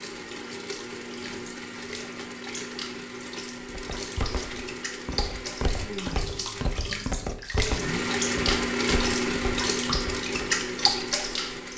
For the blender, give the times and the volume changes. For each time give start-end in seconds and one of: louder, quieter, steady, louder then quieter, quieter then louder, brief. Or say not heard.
0.0-11.7 louder.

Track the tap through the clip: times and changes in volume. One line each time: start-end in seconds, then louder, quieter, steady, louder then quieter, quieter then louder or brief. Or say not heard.
0.1-11.7 louder.